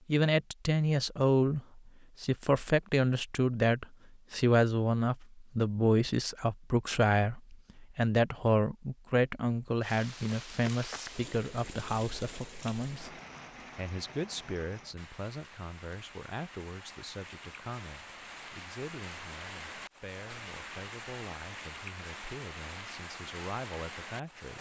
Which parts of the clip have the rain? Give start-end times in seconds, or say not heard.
9.8-24.5.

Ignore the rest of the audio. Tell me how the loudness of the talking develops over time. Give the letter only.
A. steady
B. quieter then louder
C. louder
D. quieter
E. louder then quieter
D.